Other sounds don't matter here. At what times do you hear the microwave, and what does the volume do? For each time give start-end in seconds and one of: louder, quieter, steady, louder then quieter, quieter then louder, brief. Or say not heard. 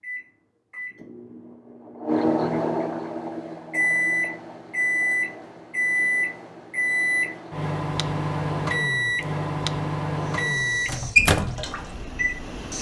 0.0-12.7 steady.